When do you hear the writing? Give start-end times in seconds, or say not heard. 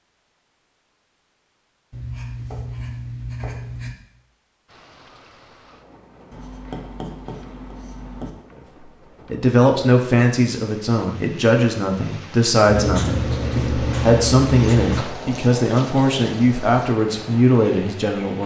1.9-4.0, 6.3-8.3, 12.7-15.1.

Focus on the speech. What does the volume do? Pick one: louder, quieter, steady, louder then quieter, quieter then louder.
steady.